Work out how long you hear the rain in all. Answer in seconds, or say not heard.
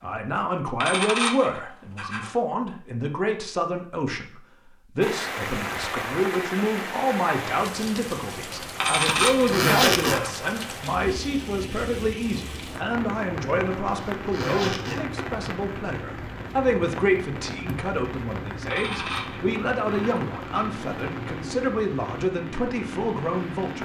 19 s.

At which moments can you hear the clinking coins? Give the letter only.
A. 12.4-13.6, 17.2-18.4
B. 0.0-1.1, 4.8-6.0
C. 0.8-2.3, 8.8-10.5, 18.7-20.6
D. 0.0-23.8
C.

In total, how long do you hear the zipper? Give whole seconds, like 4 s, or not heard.
2 s.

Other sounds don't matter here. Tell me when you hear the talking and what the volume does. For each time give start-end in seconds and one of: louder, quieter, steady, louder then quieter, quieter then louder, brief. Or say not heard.
0.0-23.8 steady.